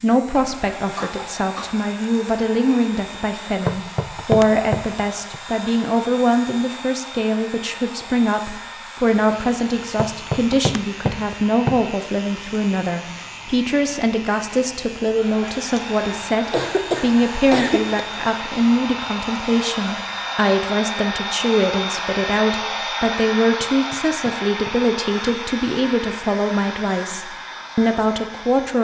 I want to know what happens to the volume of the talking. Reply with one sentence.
The loudness of the talking stays about the same.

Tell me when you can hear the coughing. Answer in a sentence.
You can hear the coughing from 0.3 to 1.9 s and from 16.4 to 18.0 s.